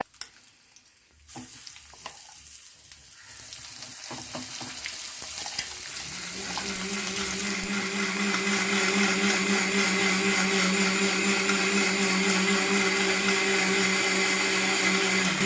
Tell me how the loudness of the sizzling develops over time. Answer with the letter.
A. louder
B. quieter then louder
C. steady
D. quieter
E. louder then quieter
A.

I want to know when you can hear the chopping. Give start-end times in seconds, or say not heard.
not heard.